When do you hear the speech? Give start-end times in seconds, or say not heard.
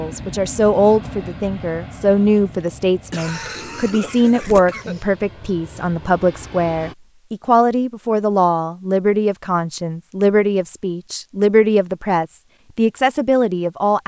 0.0-14.0.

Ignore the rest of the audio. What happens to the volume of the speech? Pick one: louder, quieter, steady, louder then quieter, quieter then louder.
steady.